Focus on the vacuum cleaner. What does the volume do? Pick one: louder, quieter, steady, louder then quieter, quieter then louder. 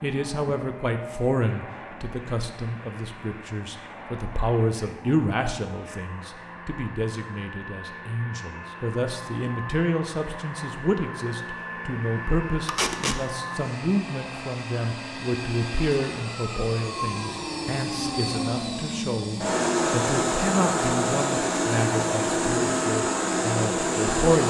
louder.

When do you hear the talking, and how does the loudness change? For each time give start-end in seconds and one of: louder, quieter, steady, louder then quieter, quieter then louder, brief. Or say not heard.
0.0-24.4 steady.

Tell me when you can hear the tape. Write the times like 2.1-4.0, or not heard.
12.7-13.2.